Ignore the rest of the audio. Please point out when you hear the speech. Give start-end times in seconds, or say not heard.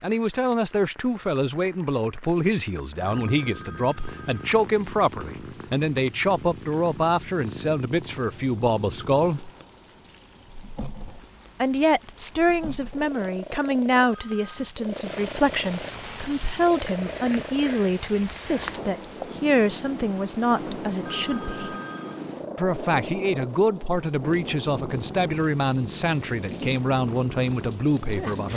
0.0-9.5, 11.6-21.8, 22.6-28.5.